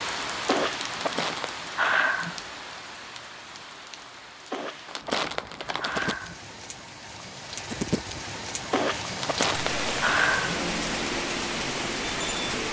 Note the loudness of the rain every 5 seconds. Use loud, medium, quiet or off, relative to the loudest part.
medium, medium, loud.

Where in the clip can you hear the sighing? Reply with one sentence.
The sighing can be heard from 0.5 to 2.4 s, from 4.5 to 6.5 s and from 8.7 to 10.7 s.